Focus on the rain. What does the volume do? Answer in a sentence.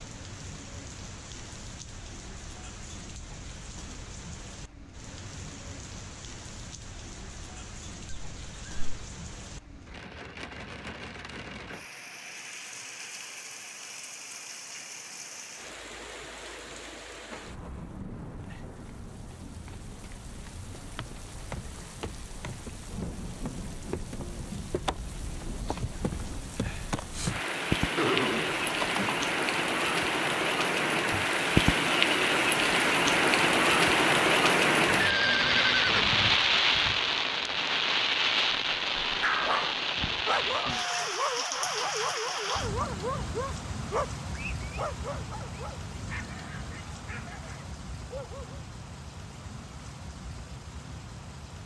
The loudness of the rain goes up, then down.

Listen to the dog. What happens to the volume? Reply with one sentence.
The loudness of the dog goes down.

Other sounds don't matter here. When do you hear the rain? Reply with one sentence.
The rain can be heard from 0.0 to 51.6 s.